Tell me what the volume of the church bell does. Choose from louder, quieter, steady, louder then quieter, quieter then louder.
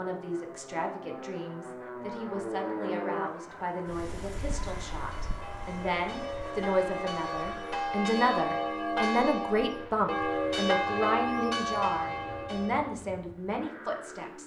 louder.